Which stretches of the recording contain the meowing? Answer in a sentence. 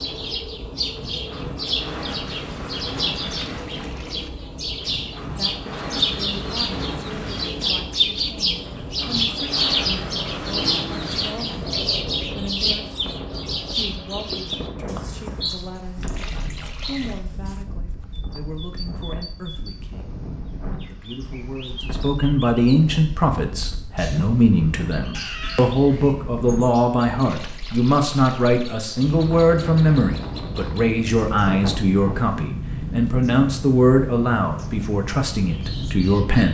You can hear the meowing from 25.1 to 25.8 s.